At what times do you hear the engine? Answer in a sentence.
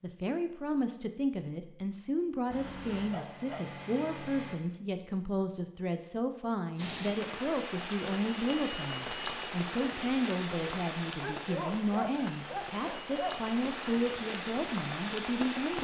You can hear the engine from 2.5 to 4.6 s.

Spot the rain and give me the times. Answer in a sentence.
The rain can be heard from 6.8 to 15.8 s.